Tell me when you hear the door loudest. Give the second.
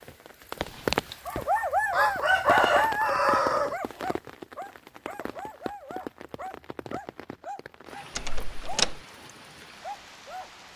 9 s.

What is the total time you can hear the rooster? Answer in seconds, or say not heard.
2 s.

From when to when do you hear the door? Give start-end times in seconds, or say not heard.
0.6-1.2, 8.2-9.0.